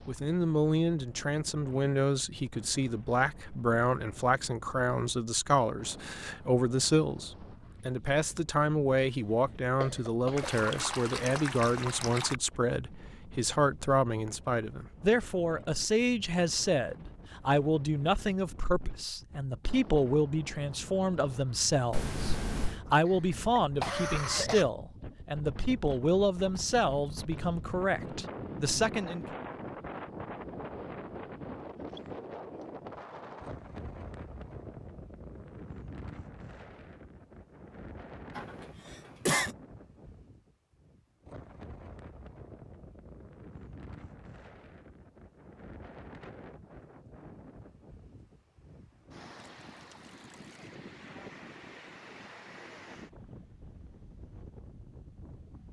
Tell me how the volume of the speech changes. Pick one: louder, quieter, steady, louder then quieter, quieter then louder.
steady.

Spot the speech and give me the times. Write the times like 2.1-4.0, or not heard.
0.1-29.4.